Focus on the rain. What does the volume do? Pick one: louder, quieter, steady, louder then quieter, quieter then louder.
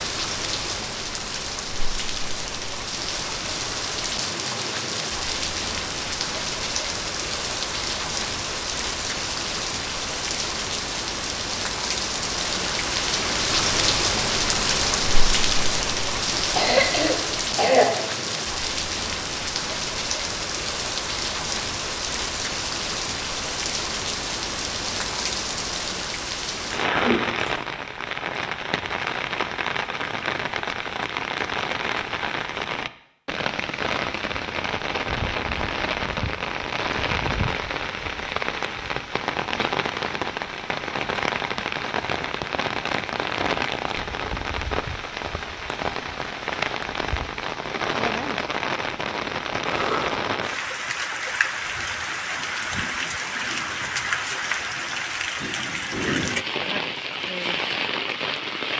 steady.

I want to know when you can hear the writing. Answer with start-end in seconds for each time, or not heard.
not heard.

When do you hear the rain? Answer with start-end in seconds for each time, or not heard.
0.0-58.7.